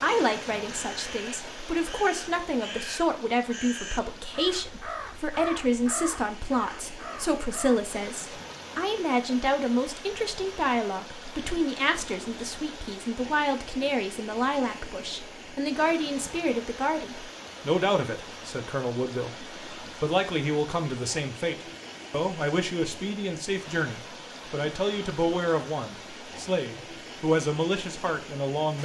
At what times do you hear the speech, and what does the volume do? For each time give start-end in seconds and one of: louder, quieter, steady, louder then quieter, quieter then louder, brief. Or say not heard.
0.0-28.8 steady.